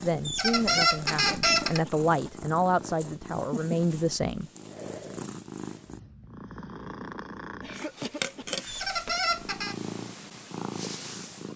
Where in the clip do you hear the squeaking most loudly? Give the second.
1 s.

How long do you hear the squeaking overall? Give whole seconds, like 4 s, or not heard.
3 s.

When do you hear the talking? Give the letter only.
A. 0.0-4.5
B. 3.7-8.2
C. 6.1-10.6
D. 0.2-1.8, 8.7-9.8
A.